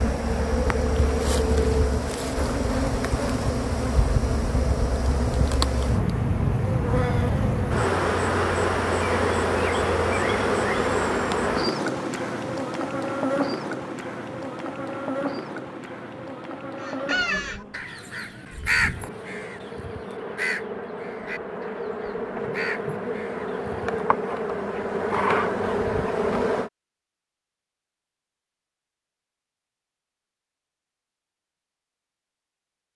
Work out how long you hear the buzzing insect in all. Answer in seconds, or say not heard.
27 s.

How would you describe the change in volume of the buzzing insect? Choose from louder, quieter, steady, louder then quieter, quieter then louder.
quieter then louder.